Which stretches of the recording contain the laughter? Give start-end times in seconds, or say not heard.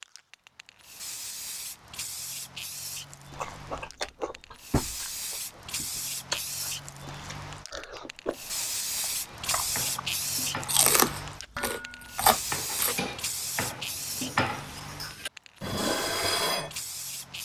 not heard.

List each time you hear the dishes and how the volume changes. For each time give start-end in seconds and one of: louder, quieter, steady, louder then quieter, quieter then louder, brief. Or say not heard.
9.2-16.7 louder.